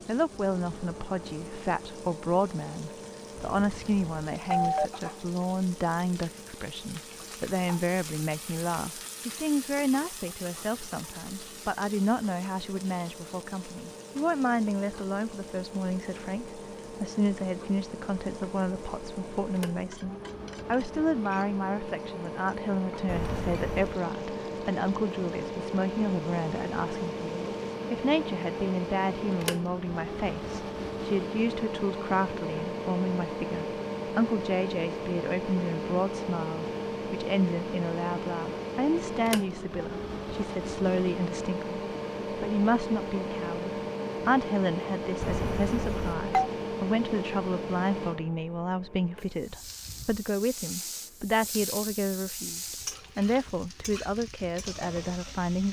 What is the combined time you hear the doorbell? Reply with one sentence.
The doorbell can be heard for 4 seconds in total.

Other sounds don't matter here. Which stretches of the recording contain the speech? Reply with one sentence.
You can hear the speech from 0.1 to 55.6 s.